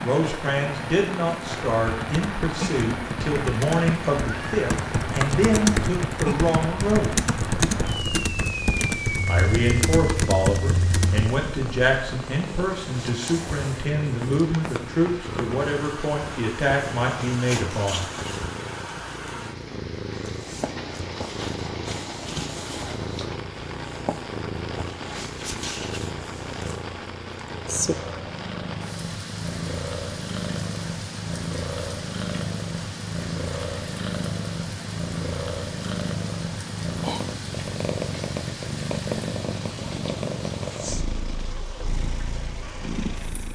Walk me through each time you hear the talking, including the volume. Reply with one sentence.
The talking can be heard from 0.0 to 7.3 s, at a steady volume; and from 9.2 to 18.1 s, at a steady volume.